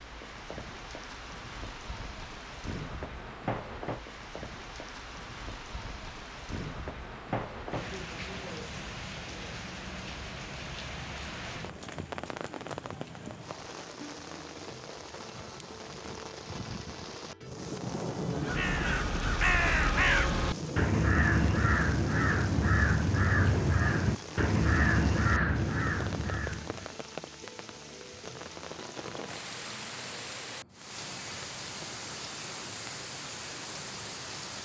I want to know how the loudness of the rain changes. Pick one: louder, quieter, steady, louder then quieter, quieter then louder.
steady.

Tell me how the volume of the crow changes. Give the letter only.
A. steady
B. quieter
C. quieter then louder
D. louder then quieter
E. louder
A.